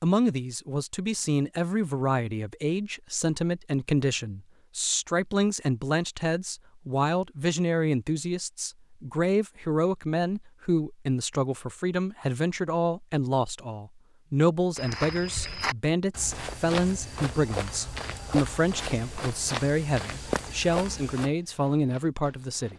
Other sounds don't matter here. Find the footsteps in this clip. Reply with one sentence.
You can hear the footsteps from 14.8 to 22.7 s.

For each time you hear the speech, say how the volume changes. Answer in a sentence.
You can hear the speech from 0.0 to 22.7 s, at a steady volume.